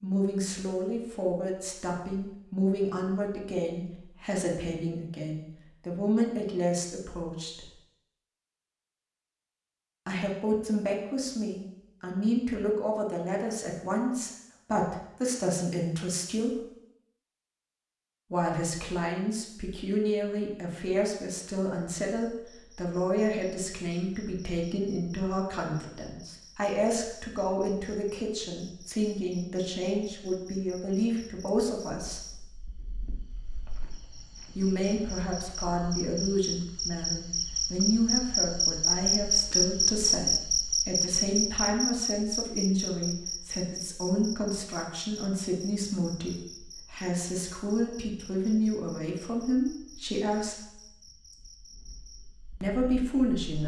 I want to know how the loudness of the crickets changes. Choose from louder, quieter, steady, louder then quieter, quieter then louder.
louder then quieter.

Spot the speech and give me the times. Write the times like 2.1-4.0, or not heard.
0.0-7.7, 10.1-16.5, 18.3-32.2, 34.5-50.5, 52.6-53.6.